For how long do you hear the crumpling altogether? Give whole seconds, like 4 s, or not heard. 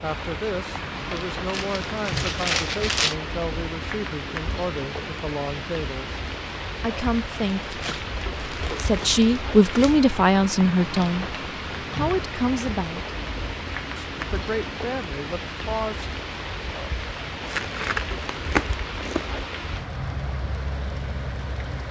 6 s.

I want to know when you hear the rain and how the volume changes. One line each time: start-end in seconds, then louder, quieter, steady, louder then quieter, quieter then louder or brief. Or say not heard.
0.0-21.8 steady.